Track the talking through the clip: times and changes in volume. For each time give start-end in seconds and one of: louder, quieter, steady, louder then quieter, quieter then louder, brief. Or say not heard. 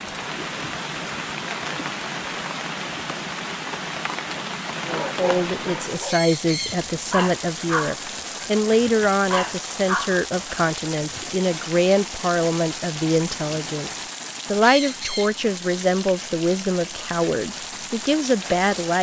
4.8-13.9 steady
14.5-18.9 steady.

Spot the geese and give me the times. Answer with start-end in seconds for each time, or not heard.
not heard.